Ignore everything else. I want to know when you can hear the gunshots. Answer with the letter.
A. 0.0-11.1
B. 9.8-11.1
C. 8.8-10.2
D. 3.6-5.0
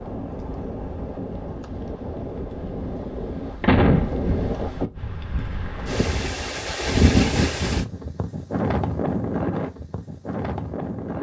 D.